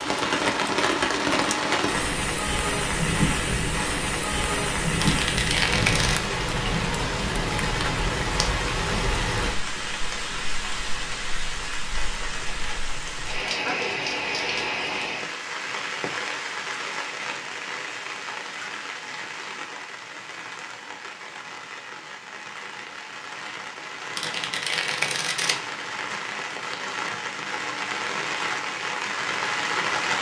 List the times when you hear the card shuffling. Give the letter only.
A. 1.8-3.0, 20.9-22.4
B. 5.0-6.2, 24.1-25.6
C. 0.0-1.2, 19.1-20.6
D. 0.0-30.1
B.